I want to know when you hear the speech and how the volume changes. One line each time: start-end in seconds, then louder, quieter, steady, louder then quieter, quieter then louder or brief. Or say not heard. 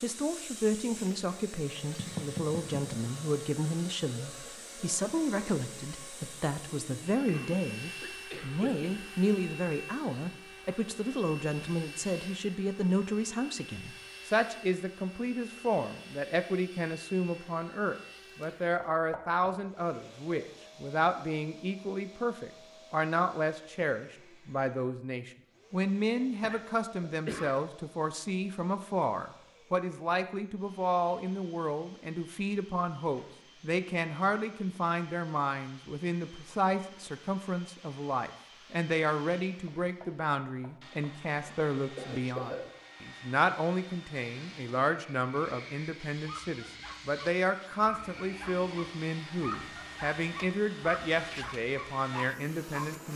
0.0-53.1 steady.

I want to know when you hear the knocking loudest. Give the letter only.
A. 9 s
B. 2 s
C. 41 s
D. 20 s
B.